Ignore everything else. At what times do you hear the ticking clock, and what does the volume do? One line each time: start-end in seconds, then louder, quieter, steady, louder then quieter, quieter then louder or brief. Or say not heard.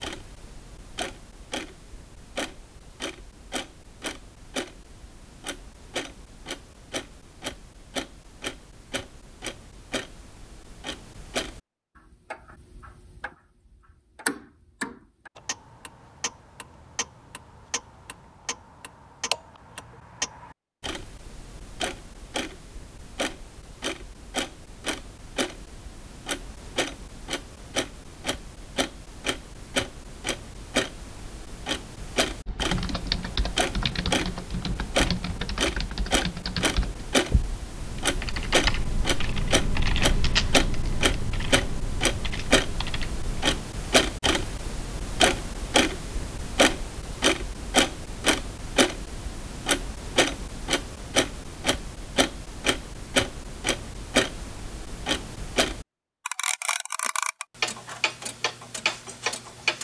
0.0-59.7 louder.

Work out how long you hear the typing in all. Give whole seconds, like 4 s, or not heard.
11 s.